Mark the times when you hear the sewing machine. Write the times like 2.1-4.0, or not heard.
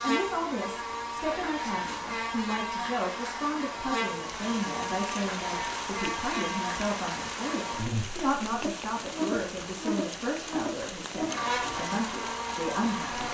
not heard.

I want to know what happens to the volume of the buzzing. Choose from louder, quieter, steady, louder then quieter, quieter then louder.
steady.